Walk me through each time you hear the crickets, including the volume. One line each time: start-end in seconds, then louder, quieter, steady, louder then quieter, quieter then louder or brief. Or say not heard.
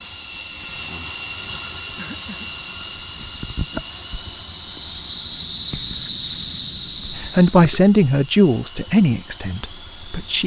0.0-7.8 louder.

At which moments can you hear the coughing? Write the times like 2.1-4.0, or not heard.
1.9-2.5.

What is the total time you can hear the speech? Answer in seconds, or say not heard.
3 s.